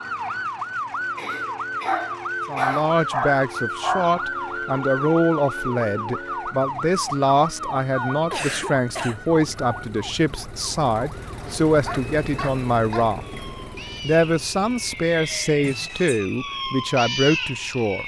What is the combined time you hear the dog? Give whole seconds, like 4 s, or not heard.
4 s.